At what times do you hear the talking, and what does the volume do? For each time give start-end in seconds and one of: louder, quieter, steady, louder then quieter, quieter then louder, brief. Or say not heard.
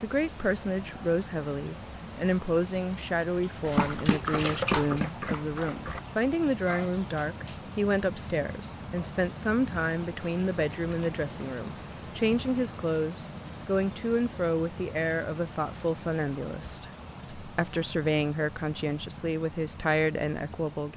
0.0-20.9 steady.